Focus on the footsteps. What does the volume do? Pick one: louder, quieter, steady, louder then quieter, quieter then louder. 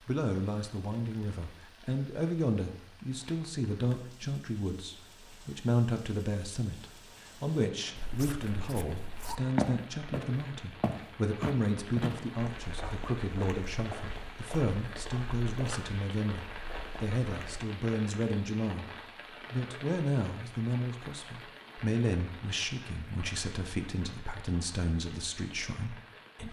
quieter.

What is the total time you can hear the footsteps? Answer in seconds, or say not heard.
10 s.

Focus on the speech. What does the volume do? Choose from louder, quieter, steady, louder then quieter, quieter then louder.
steady.